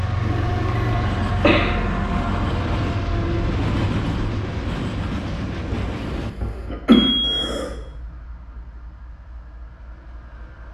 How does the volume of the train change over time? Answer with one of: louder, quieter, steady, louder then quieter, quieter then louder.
quieter.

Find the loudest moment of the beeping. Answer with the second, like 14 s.
7 s.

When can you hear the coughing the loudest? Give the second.
7 s.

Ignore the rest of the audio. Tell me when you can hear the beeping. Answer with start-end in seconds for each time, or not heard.
0.2-1.1, 6.9-7.5.